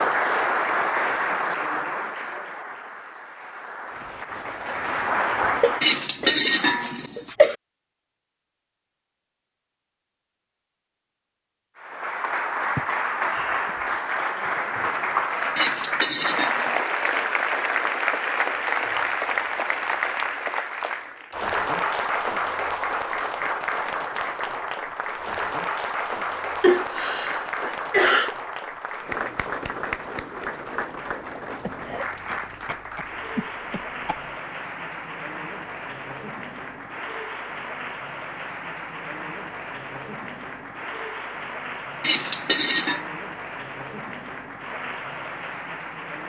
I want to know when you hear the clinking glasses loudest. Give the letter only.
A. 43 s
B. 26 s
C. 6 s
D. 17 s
C.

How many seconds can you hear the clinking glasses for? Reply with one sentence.
You can hear the clinking glasses for 4 seconds altogether.